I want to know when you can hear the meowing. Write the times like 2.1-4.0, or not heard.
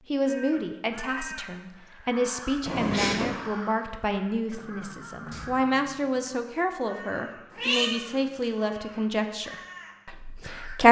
2.6-3.4, 7.5-8.5.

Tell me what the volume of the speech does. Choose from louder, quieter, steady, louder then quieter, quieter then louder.
steady.